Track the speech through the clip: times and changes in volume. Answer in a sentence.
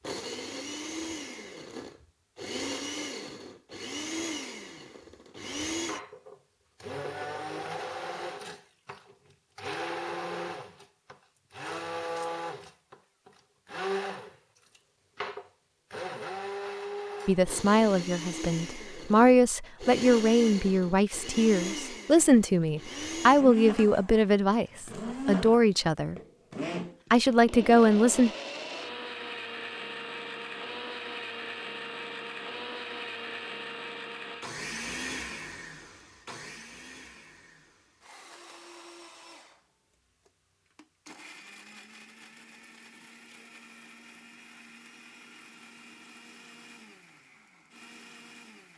The speech can be heard from 17.2 to 26.1 s, at a steady volume; and briefly from 27.1 to 28.3 s.